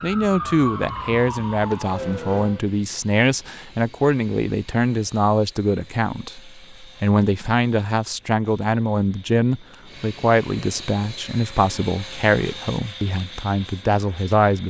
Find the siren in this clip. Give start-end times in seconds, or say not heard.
0.0-2.6.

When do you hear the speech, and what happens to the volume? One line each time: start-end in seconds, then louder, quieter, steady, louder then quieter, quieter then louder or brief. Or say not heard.
0.0-14.6 steady.